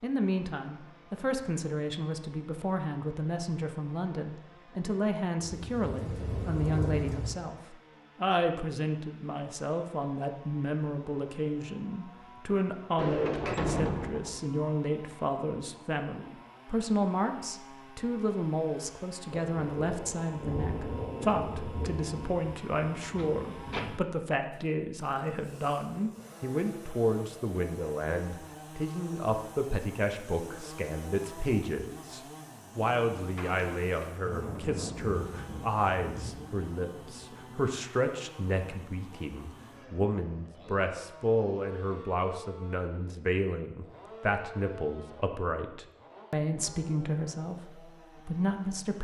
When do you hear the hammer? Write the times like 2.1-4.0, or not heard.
not heard.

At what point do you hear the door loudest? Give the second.
14 s.